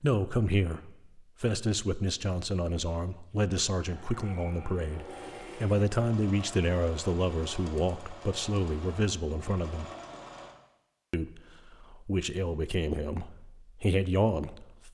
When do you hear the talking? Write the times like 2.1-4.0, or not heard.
0.0-9.9, 11.1-14.9.